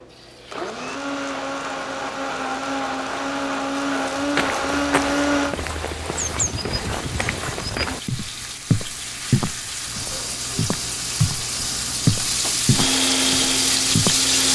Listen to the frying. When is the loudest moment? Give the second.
14 s.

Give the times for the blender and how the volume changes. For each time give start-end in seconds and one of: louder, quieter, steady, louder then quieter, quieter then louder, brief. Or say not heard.
0.0-5.5 louder
12.7-14.4 brief.